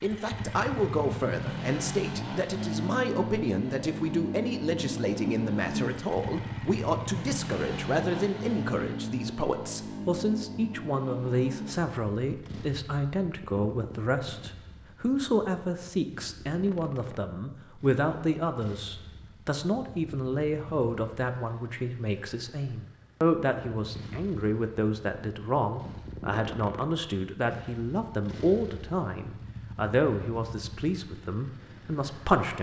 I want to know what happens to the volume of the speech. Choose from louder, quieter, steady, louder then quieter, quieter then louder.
steady.